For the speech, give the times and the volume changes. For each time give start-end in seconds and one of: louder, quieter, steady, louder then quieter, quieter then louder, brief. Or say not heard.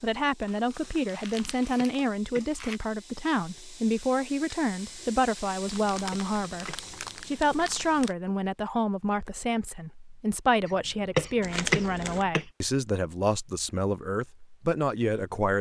0.0-15.5 steady.